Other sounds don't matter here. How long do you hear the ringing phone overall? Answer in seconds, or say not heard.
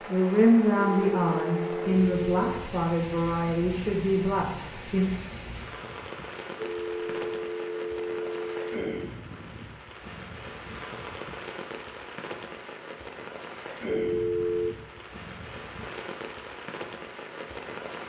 5 s.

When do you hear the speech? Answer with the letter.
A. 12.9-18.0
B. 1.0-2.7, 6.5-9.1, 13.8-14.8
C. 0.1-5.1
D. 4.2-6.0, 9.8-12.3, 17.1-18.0
C.